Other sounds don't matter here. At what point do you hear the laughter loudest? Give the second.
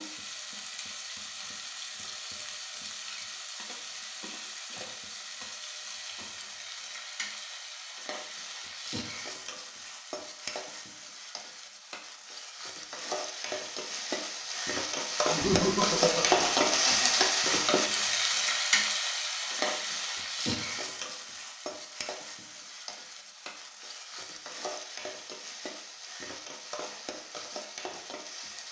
16 s.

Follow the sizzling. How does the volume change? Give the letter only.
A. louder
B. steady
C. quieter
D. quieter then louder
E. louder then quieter
E.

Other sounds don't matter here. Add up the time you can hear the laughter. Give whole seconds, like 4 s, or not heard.
2 s.